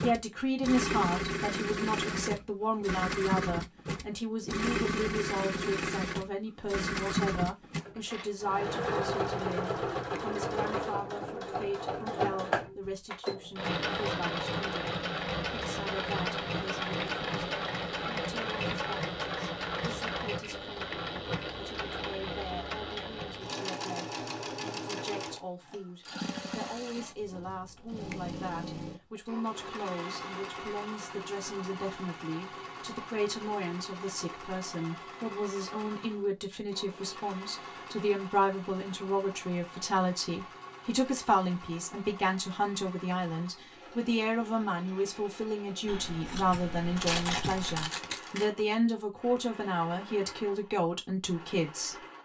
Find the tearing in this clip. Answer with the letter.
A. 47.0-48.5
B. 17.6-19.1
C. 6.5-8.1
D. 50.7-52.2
A.